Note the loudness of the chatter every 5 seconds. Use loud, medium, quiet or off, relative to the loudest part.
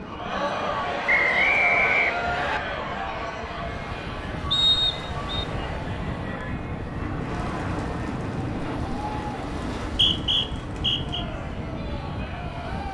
loud, medium, medium.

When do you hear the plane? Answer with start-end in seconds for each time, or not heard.
0.0-12.8.